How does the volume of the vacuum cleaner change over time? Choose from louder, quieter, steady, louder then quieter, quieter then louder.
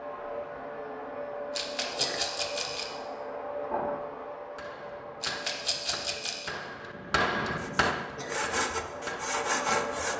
quieter then louder.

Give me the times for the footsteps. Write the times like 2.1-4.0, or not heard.
not heard.